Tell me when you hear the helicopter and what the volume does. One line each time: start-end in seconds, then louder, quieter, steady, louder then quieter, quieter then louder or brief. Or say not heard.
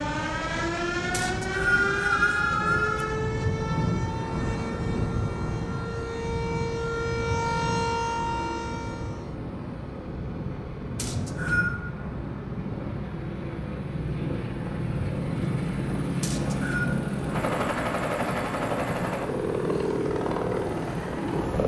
0.1-21.6 louder.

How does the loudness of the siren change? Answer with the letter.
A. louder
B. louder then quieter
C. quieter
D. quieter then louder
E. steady
D.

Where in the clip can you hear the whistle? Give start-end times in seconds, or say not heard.
1.1-2.9, 10.9-11.8, 16.2-16.9.